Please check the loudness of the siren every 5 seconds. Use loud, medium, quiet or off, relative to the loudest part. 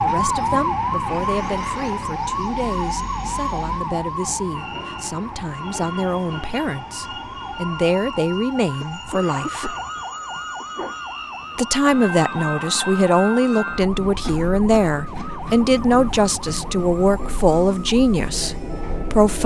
loud, medium, medium, quiet.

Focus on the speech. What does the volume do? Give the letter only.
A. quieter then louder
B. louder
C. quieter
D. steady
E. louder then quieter
B.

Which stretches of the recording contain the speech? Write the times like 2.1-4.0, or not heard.
0.0-9.8, 11.6-19.4.